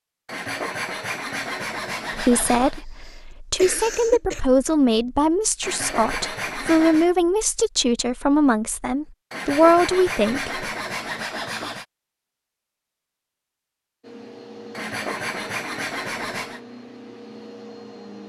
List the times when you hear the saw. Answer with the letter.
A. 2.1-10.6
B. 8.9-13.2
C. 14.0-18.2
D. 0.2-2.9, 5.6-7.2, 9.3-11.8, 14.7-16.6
D.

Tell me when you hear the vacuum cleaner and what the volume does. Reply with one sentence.
You can hear the vacuum cleaner from 14.0 to 18.2 s, at a steady volume.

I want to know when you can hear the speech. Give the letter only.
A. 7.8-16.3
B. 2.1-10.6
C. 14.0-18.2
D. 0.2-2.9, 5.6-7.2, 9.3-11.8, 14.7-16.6
B.